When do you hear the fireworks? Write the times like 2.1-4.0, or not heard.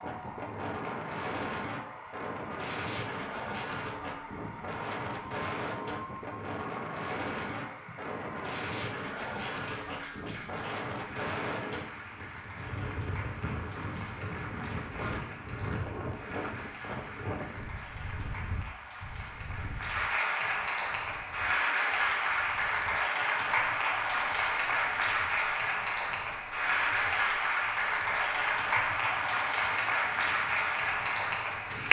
not heard.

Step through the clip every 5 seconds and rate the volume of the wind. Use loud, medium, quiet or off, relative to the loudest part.
loud, loud, loud, loud, quiet, quiet, quiet.